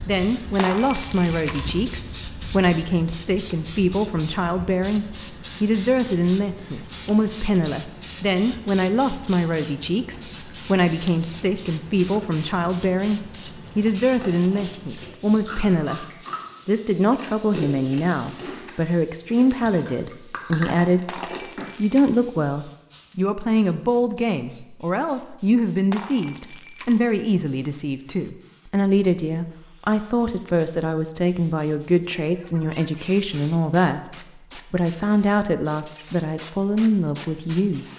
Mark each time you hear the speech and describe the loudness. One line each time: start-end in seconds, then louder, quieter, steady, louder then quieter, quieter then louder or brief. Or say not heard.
0.1-37.9 steady.